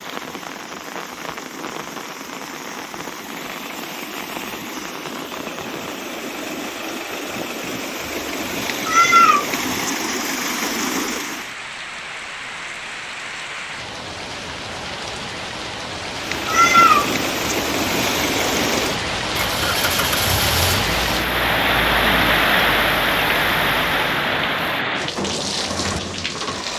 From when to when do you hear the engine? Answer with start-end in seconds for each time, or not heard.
0.0-11.6, 16.1-26.7.